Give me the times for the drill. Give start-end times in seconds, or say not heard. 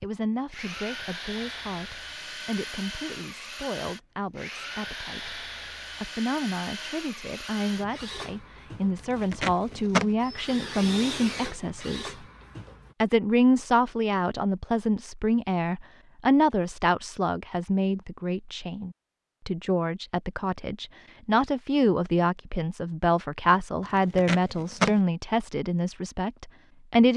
0.0-12.9.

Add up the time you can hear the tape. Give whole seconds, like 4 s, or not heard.
2 s.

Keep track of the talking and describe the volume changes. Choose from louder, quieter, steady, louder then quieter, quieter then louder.
louder.